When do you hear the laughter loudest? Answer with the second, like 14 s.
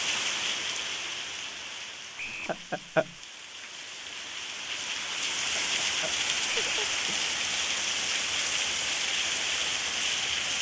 3 s.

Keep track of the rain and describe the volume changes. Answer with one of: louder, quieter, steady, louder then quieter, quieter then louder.
quieter then louder.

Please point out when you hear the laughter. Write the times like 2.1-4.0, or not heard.
2.5-3.1, 5.5-7.2.